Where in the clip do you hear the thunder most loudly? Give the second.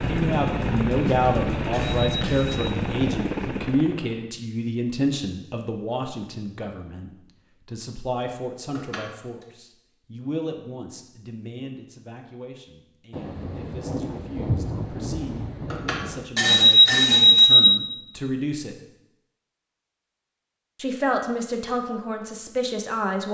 15 s.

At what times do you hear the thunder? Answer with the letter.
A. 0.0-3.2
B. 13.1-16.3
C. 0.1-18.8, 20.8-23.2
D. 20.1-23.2
B.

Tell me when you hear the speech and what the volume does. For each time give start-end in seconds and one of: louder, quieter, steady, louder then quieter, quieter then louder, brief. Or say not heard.
0.1-18.8 quieter then louder
20.8-23.2 brief.